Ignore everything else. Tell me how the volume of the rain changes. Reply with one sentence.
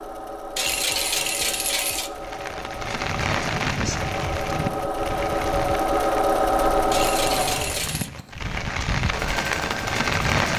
The loudness of the rain goes down, then up.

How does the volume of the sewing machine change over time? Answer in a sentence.
The loudness of the sewing machine goes up, then down.